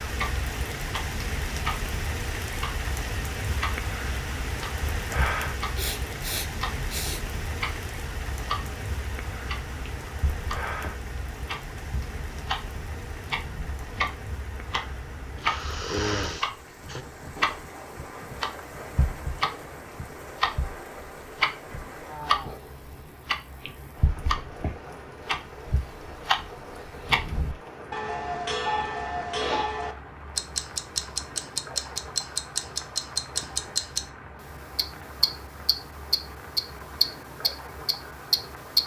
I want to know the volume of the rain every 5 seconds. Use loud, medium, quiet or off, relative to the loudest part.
loud, loud, medium, medium, medium, medium, medium, medium.